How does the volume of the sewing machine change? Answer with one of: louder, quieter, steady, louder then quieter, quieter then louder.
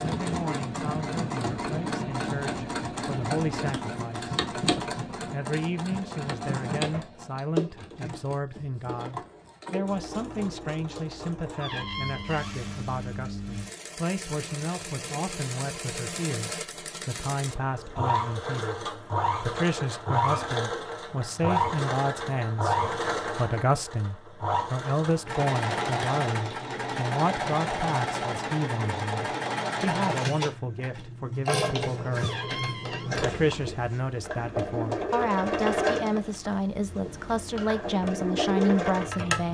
quieter then louder.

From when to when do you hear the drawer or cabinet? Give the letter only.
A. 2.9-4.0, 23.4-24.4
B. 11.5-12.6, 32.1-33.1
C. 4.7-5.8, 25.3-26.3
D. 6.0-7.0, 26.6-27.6
B.